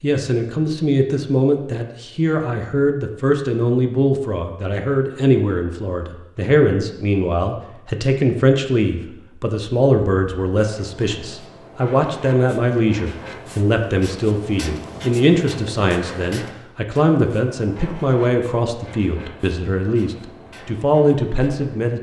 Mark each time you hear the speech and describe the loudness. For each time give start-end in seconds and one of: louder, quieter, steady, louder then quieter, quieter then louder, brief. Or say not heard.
0.0-21.9 steady.